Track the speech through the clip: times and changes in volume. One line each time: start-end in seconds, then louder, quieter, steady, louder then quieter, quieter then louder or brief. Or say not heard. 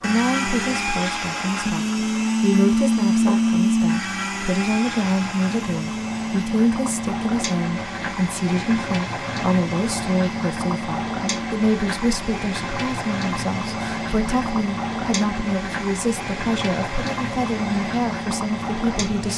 0.0-19.3 steady.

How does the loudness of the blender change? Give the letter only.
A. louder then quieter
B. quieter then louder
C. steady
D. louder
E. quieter
E.